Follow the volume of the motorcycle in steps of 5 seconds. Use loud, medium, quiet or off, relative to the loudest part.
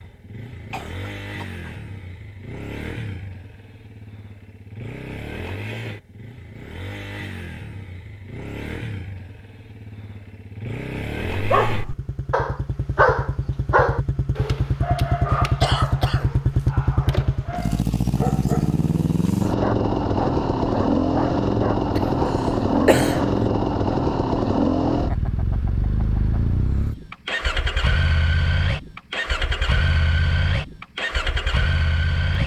quiet, quiet, medium, loud, loud, medium, medium.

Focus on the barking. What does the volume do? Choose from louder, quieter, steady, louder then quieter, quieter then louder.
quieter then louder.